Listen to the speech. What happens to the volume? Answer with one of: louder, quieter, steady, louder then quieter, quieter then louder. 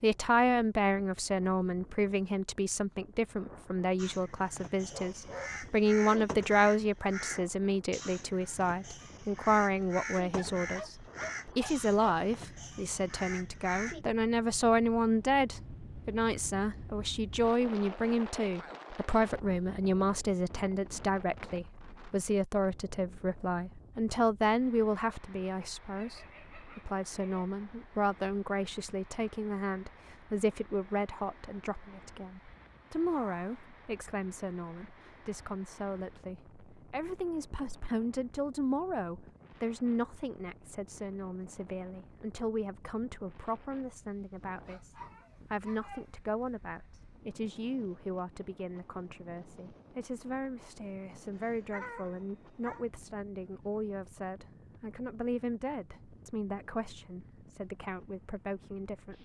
quieter.